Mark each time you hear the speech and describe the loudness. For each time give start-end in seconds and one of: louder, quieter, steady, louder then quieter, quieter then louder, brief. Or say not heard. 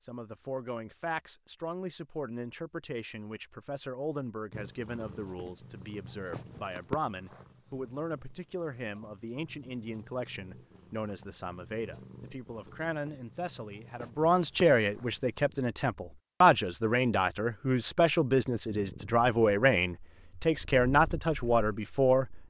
0.0-22.2 louder.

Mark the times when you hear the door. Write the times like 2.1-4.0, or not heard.
not heard.